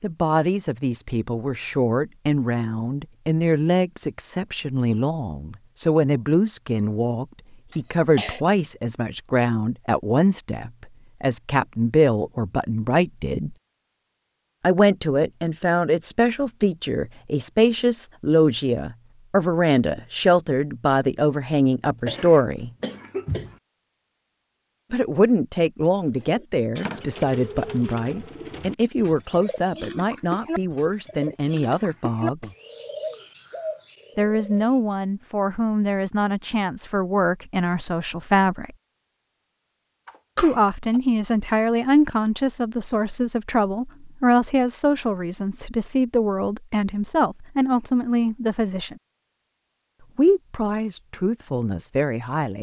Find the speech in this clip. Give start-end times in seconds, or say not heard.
0.0-13.6, 14.6-22.7, 24.9-32.5, 34.1-38.7, 40.4-49.0, 50.1-52.5.